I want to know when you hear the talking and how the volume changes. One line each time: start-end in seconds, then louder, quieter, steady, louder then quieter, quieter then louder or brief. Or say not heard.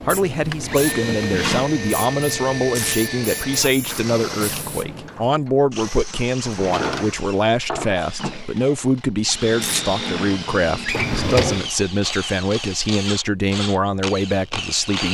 0.0-15.0 steady.